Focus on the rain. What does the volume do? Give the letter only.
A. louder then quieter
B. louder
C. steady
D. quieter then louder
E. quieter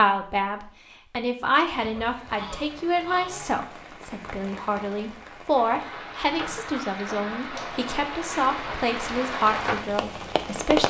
B.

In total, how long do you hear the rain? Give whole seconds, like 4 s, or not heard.
9 s.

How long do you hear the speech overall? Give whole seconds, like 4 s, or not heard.
11 s.